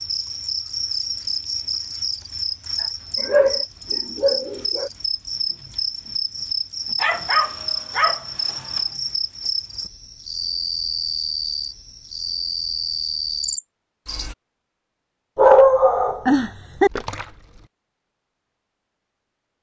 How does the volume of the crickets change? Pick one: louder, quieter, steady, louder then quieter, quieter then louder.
steady.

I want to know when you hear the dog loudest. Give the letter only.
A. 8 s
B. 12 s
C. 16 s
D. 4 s
C.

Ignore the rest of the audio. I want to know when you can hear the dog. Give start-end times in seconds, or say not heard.
3.1-4.9, 7.0-8.8, 15.3-16.9.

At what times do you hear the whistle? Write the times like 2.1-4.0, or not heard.
not heard.